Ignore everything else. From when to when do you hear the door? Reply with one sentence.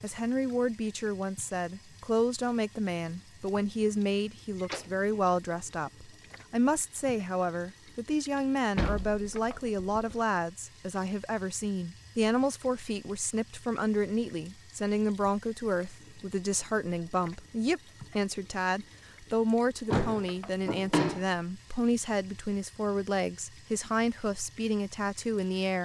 You can hear the door from 4.5 to 5.0 s, from 8.8 to 10.2 s and from 19.9 to 21.2 s.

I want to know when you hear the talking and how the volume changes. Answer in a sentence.
The talking can be heard from 0.0 to 25.8 s, at a steady volume.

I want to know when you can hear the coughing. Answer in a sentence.
The coughing can't be heard in this clip.